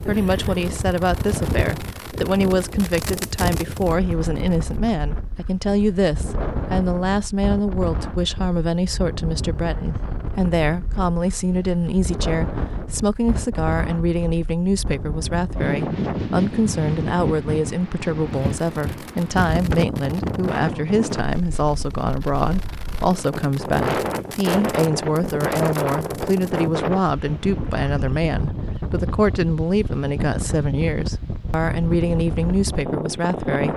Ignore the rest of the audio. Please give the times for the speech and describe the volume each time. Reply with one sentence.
You can hear the speech from 0.1 to 33.7 s, at a steady volume.